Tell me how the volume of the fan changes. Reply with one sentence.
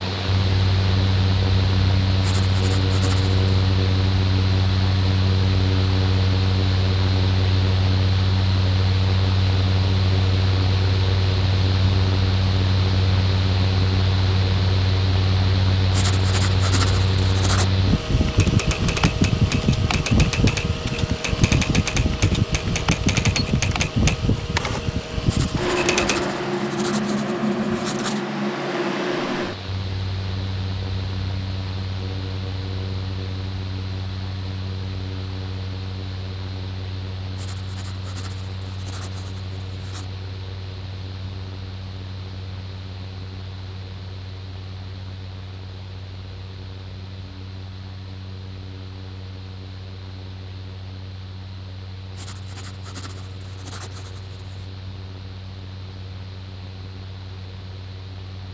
The loudness of the fan goes down.